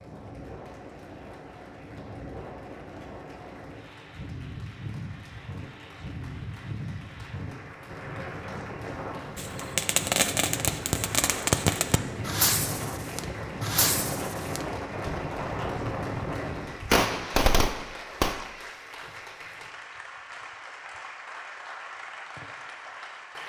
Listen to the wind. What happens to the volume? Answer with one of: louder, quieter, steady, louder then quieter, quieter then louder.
louder.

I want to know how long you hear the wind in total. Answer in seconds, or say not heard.
17 s.